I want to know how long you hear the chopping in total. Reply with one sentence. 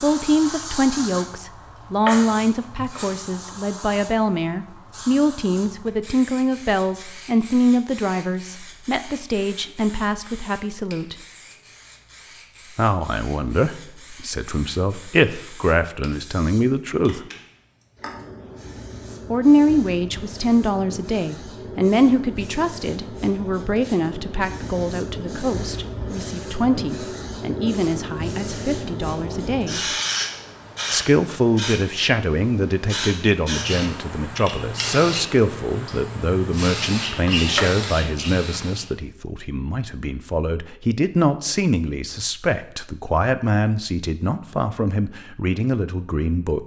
You can hear the chopping for 2 seconds altogether.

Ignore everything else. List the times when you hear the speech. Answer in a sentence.
You can hear the speech from 0.0 to 11.2 s, from 12.8 to 17.2 s, from 19.3 to 29.8 s and from 30.9 to 46.6 s.